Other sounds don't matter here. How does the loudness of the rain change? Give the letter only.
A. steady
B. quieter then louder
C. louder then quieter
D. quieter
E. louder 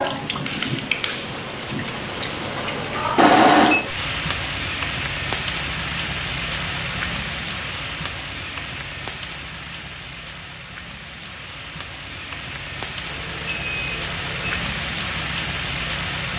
B.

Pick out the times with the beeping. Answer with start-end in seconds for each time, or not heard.
3.1-3.9, 13.1-14.6.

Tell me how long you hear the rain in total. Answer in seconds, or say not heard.
16 s.